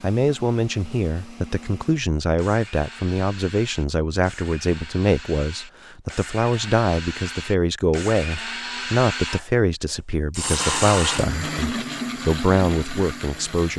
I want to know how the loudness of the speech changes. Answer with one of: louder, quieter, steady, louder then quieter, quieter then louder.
steady.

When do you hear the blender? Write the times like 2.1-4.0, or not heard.
0.0-13.7.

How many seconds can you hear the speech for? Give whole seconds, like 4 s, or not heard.
14 s.